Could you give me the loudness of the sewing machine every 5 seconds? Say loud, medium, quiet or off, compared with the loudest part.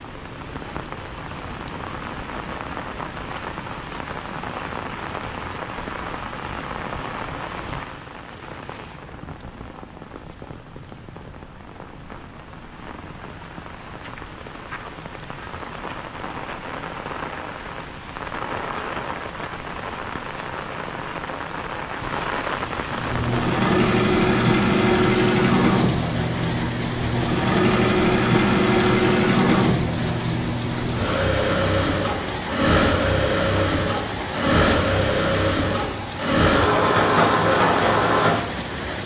off, off, off, off, loud, loud, loud, loud.